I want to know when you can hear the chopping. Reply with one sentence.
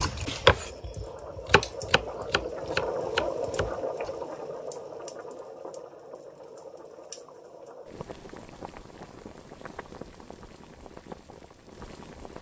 The chopping can be heard from 0.0 to 4.1 s.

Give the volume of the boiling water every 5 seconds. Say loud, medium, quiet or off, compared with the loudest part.
loud, medium, medium.